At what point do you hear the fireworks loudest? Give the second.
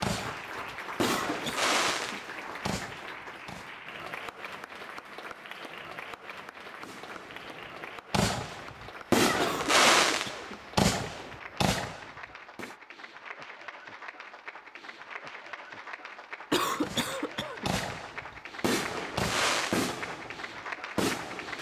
10 s.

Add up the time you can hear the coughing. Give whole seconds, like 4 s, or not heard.
4 s.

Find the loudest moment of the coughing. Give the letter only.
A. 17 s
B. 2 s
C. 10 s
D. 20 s
A.